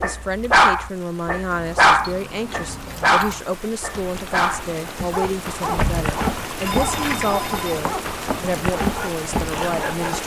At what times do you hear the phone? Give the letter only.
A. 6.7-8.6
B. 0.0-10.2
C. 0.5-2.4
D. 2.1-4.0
A.